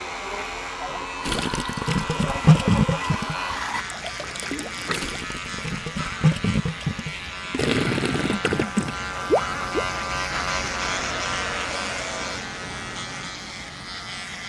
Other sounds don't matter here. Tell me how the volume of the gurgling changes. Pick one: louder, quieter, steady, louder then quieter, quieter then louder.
quieter then louder.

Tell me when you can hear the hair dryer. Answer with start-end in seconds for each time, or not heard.
0.0-3.9, 10.8-12.4.